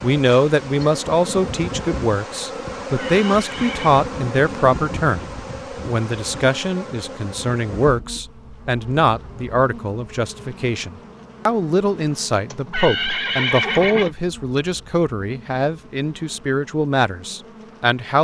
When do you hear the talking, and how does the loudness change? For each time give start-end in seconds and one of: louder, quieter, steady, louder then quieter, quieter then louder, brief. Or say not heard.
0.0-18.1 steady.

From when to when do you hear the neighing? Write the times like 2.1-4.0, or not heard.
3.0-4.0, 12.5-14.2.